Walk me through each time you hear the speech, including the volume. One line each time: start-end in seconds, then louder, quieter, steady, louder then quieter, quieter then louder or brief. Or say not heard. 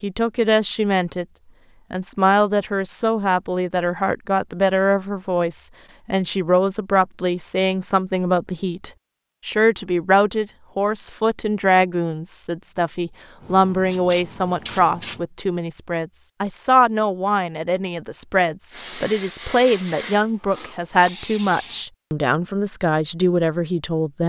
0.0-1.2 brief
1.9-24.2 steady.